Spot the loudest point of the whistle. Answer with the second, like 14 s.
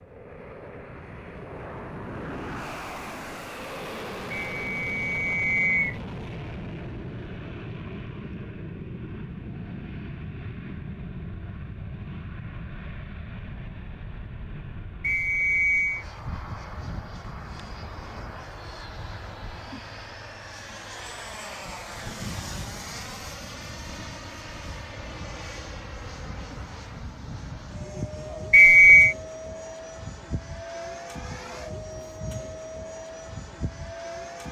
29 s.